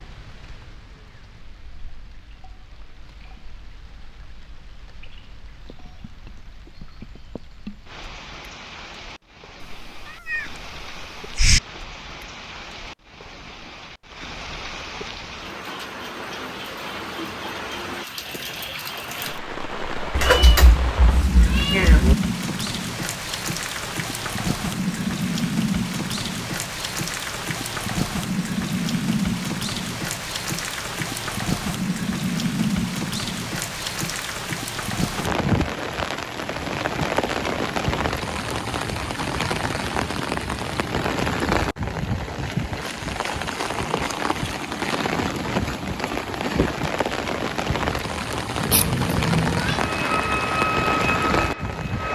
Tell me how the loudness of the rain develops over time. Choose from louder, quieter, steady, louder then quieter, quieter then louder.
louder.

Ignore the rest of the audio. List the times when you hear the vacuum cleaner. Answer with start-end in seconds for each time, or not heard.
49.7-52.0.